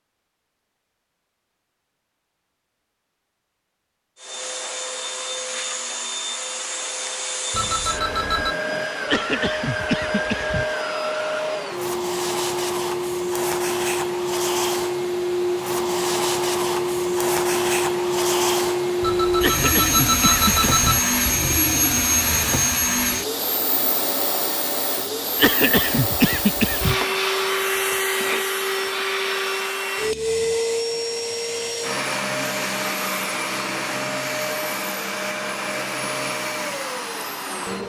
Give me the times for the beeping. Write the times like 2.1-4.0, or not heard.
7.5-8.6, 19.0-21.0.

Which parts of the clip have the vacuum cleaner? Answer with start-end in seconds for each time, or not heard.
4.2-37.8.